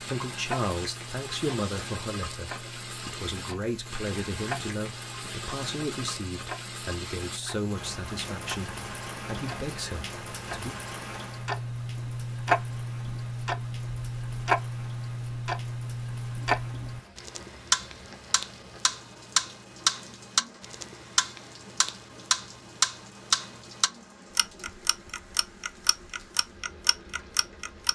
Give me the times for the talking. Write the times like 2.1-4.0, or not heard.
0.0-10.8.